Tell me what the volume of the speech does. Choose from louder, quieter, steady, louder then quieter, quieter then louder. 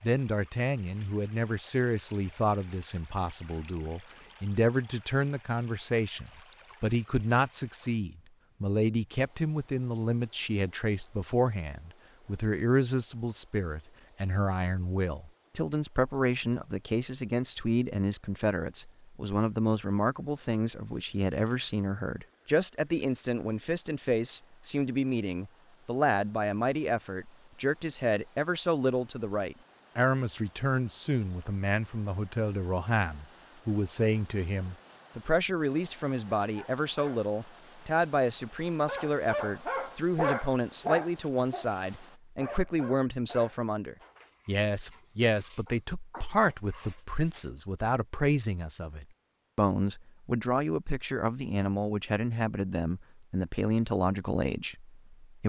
steady.